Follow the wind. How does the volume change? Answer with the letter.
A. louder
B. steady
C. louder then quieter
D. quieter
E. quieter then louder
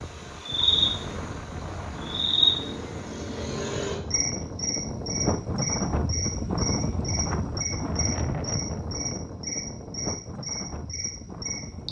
C.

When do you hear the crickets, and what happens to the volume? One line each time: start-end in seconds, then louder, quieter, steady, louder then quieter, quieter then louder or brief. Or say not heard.
0.0-11.8 quieter.